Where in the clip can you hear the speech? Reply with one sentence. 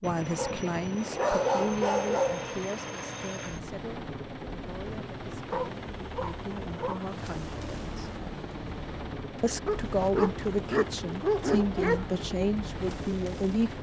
The speech can be heard from 0.0 to 8.1 s and from 9.4 to 13.7 s.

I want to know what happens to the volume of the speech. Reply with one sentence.
The loudness of the speech goes down, then up.